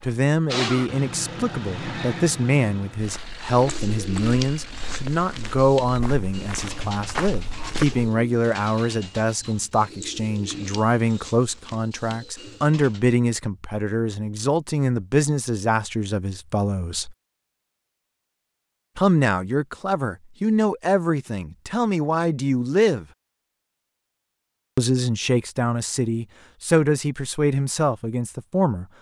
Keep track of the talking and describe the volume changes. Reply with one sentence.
The loudness of the talking stays about the same.